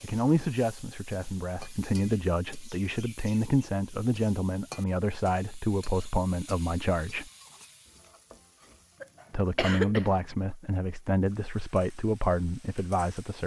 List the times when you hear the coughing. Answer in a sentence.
The coughing can be heard from 9.0 to 10.1 s.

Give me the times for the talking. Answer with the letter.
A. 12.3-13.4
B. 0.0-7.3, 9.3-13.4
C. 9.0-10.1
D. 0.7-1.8
B.